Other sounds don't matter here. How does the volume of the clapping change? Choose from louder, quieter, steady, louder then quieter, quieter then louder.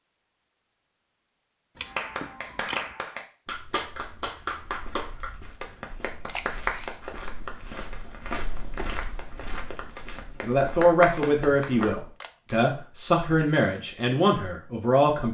quieter then louder.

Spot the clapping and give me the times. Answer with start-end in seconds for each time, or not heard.
1.9-11.9.